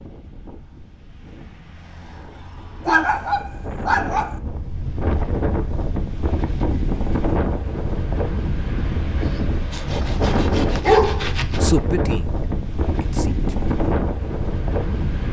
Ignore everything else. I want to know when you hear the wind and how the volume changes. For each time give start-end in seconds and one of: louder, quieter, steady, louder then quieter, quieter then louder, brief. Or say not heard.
0.0-15.2 louder.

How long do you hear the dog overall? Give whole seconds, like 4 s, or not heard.
3 s.